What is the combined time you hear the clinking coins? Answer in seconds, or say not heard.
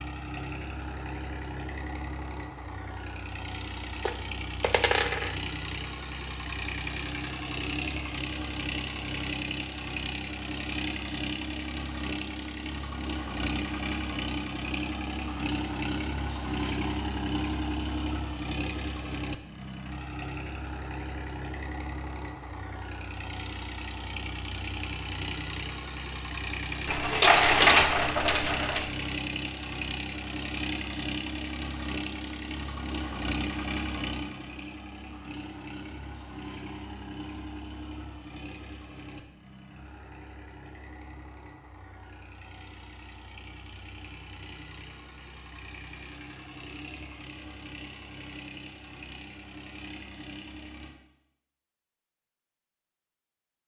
3 s.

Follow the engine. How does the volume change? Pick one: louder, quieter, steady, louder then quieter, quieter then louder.
quieter.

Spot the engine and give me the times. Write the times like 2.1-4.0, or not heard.
0.0-51.0.